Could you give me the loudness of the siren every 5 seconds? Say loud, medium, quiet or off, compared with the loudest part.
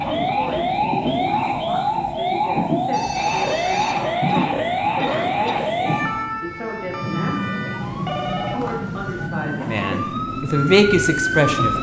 loud, medium, loud.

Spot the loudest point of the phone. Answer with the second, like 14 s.
8 s.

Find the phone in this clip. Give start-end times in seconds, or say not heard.
2.9-4.0, 7.8-9.3.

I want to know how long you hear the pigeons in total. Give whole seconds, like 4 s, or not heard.
not heard.